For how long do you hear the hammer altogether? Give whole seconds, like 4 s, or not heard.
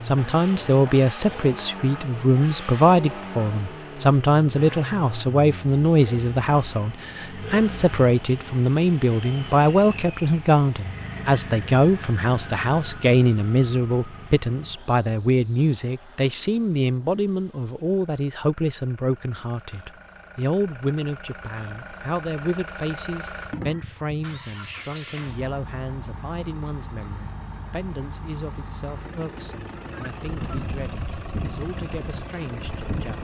not heard.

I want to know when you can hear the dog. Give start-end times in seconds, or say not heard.
not heard.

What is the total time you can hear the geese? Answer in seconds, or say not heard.
3 s.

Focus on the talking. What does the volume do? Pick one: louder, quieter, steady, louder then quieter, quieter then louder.
quieter.